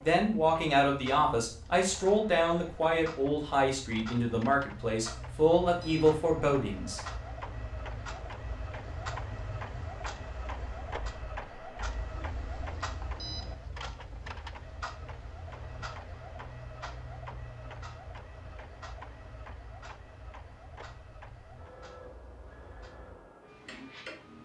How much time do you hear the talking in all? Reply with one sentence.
You can hear the talking for 7 seconds altogether.